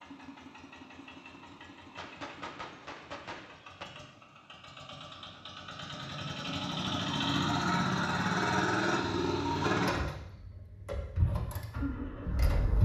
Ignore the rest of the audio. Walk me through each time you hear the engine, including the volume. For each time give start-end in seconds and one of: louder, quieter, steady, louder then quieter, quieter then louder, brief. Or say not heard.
0.0-12.8 louder then quieter.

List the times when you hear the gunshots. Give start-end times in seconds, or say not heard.
1.9-3.9.